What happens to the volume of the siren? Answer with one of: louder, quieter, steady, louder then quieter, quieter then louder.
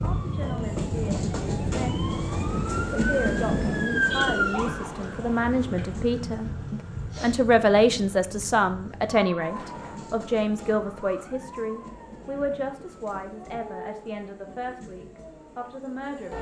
quieter.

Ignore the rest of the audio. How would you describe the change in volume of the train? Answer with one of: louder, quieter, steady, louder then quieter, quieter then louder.
quieter.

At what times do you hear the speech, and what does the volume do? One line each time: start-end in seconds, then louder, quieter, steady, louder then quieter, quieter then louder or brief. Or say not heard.
0.0-2.0 brief
3.0-16.3 louder then quieter.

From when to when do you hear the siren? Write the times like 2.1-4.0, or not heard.
0.0-16.3.